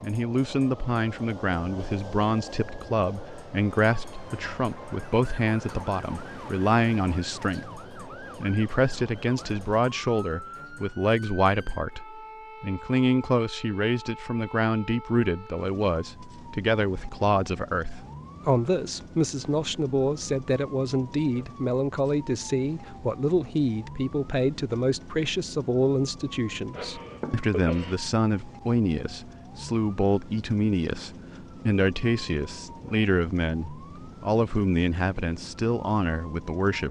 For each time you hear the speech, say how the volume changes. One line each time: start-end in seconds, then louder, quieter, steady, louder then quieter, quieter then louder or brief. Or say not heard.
0.0-36.8 steady.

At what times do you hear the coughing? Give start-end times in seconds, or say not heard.
26.7-27.9.